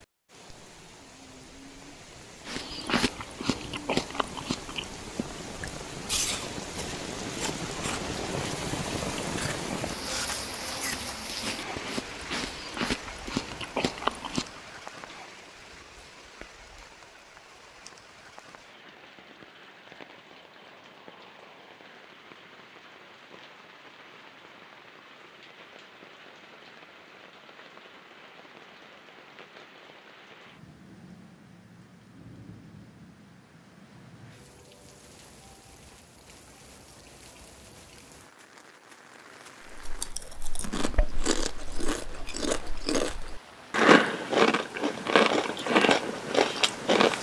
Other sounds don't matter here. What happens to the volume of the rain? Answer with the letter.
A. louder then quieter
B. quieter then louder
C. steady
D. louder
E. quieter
E.